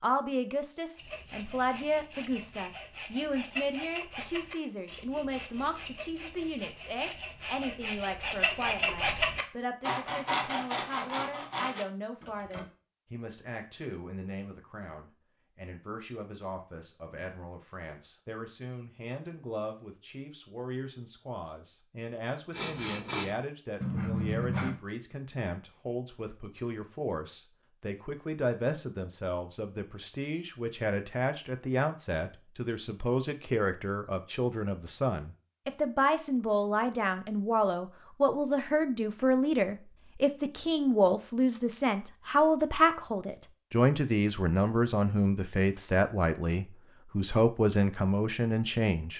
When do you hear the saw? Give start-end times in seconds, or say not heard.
0.9-12.7, 22.5-24.8.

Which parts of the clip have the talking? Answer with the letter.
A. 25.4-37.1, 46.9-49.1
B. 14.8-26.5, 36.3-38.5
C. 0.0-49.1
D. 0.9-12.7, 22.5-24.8
C.